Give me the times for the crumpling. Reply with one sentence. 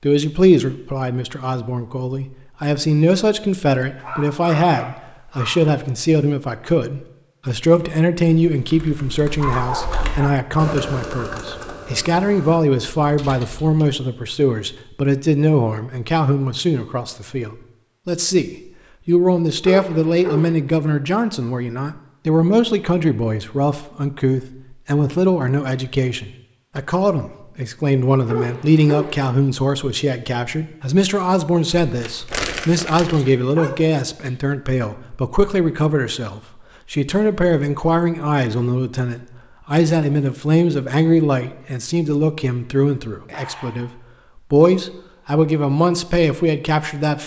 You can hear the crumpling from 31.9 to 33.4 s.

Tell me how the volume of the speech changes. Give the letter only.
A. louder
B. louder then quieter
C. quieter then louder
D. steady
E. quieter
D.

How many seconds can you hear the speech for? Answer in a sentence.
The speech can be heard for 47 seconds in total.